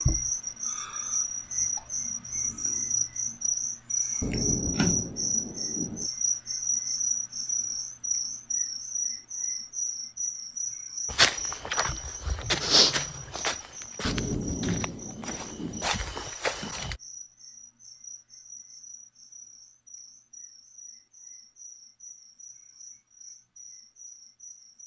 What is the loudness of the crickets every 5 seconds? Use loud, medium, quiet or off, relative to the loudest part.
loud, loud, medium, quiet, quiet.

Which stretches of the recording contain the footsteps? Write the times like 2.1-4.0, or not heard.
11.1-16.9.